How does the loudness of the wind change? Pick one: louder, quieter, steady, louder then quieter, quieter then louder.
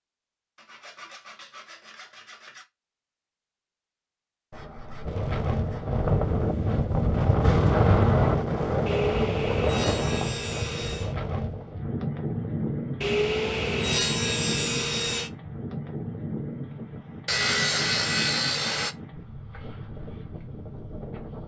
quieter.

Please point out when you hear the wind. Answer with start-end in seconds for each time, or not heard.
5.0-21.4.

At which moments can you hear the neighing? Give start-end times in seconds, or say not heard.
not heard.